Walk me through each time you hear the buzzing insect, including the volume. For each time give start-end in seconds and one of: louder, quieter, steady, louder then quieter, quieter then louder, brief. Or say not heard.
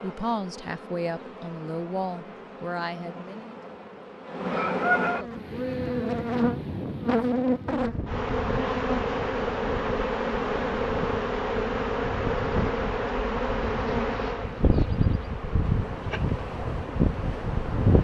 0.0-17.9 louder then quieter.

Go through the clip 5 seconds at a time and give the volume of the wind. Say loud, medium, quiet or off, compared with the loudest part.
off, medium, medium, loud.